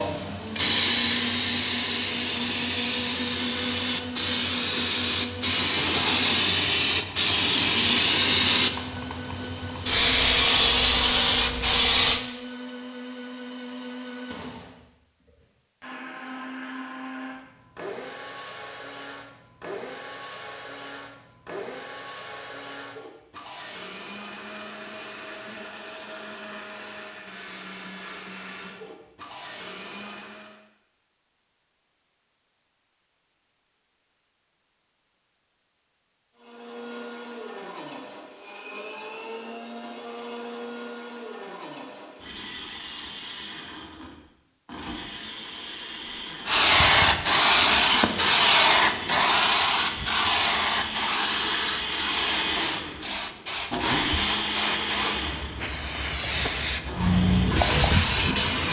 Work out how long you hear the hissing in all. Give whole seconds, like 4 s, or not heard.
24 s.